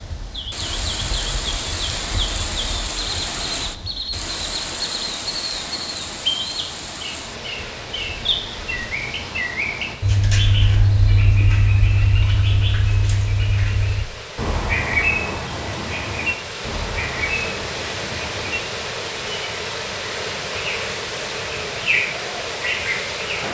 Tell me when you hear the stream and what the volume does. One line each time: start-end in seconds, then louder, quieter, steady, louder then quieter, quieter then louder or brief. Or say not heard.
0.0-23.4 quieter then louder.